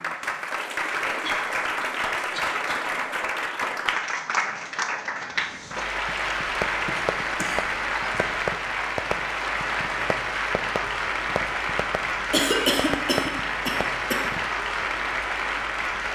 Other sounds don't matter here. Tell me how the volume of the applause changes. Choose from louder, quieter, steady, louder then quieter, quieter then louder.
steady.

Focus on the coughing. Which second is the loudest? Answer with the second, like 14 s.
13 s.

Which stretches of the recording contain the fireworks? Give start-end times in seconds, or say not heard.
6.0-14.4.